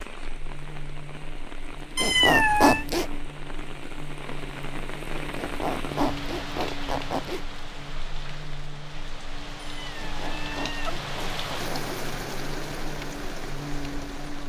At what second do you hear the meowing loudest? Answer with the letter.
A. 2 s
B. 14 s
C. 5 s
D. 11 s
A.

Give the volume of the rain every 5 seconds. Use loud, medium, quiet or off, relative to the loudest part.
medium, loud, loud.